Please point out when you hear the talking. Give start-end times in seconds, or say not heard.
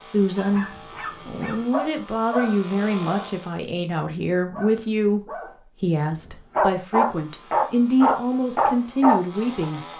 0.0-0.7, 1.2-9.8.